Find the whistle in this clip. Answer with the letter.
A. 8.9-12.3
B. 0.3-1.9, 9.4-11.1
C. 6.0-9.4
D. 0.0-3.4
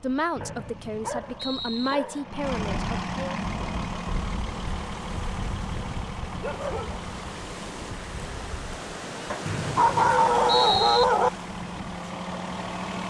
B.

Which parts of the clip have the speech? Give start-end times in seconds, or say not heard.
0.0-3.4.